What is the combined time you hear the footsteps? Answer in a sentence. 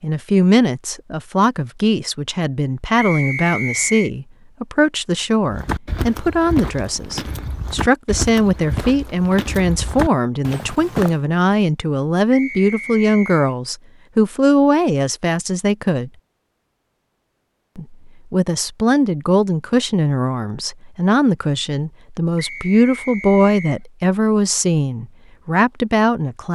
You can hear the footsteps for 6 seconds altogether.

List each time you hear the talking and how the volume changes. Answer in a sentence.
The talking can be heard from 0.0 to 16.1 s, at a steady volume; and from 17.8 to 26.5 s, at a steady volume.